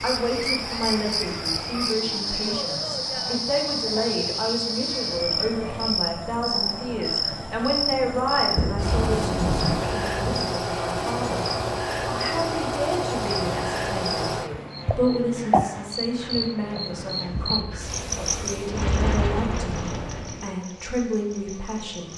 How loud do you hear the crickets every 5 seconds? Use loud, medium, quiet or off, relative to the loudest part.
loud, loud, loud, loud, quiet.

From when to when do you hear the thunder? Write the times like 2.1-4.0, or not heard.
8.6-10.5.